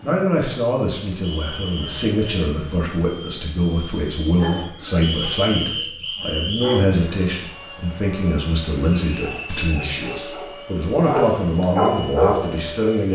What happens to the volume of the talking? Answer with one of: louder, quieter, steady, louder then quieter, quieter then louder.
steady.